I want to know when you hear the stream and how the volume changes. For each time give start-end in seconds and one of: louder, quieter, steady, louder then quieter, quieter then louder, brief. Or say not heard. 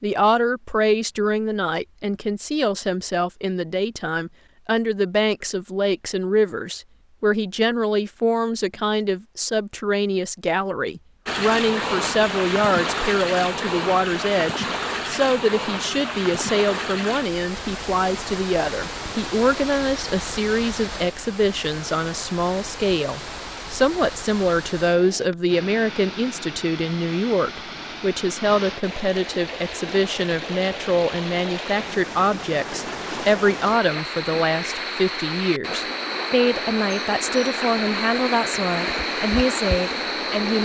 11.2-40.5 quieter then louder.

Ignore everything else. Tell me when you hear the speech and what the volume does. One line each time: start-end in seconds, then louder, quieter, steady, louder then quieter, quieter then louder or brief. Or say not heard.
0.0-40.5 steady.